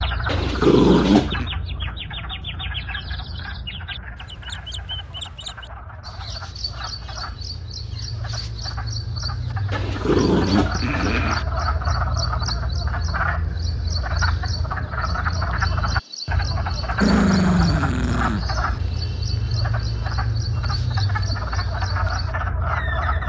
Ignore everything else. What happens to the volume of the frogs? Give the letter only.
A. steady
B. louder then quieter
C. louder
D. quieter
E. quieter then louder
C.